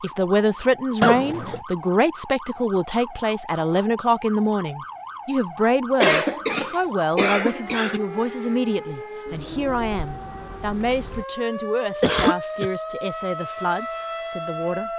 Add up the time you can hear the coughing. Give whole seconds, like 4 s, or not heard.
3 s.